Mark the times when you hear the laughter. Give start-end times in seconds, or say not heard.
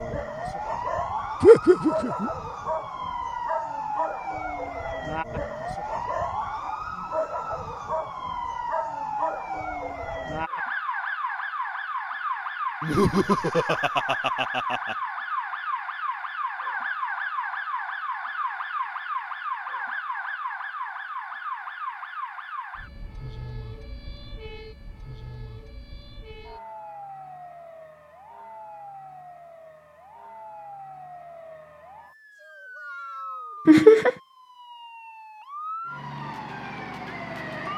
1.4-2.3, 12.8-14.9, 33.6-34.1.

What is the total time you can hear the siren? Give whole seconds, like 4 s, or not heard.
38 s.